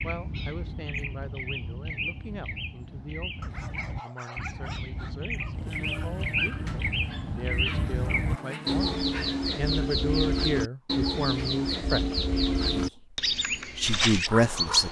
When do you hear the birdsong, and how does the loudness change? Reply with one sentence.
The birdsong can be heard from 0.0 to 14.8 s, getting louder.